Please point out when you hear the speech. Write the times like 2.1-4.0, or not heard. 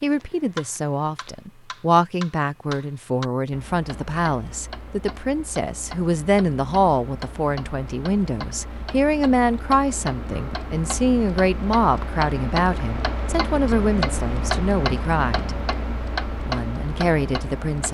0.0-15.6, 16.4-17.8.